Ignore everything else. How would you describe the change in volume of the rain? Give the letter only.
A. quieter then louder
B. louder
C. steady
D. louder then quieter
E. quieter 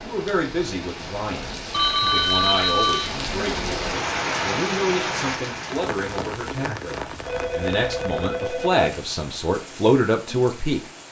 D.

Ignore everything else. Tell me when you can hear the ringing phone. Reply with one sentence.
The ringing phone can be heard from 1.7 to 3.1 s and from 7.2 to 8.8 s.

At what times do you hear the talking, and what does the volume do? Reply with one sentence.
The talking can be heard from 0.0 to 11.0 s, getting louder.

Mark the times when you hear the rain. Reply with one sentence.
The rain can be heard from 0.0 to 11.0 s.